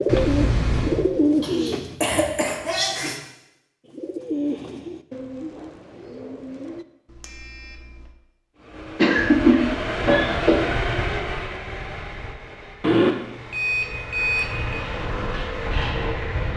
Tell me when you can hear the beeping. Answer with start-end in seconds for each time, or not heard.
0.1-1.1, 7.1-8.1, 12.8-14.8.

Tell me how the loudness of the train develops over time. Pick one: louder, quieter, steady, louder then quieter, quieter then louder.
quieter then louder.